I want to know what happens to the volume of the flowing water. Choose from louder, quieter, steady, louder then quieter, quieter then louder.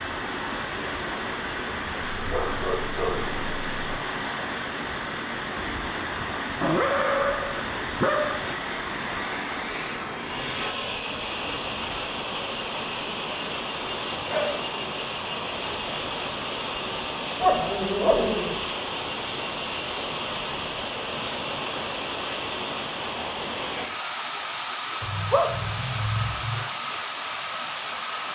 steady.